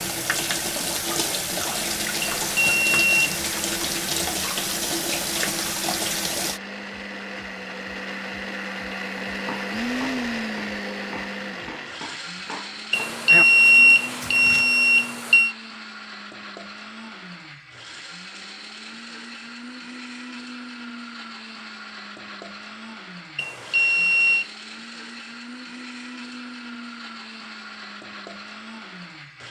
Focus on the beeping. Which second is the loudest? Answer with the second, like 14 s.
14 s.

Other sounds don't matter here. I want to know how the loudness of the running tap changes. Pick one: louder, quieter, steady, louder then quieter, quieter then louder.
steady.